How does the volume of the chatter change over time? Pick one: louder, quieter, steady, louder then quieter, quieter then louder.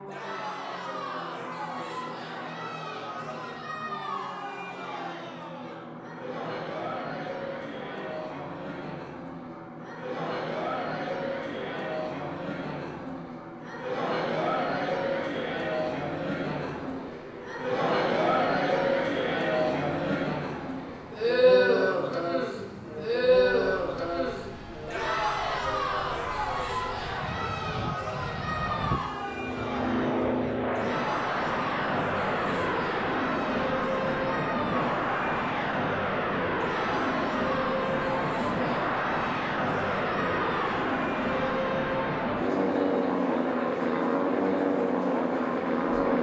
louder then quieter.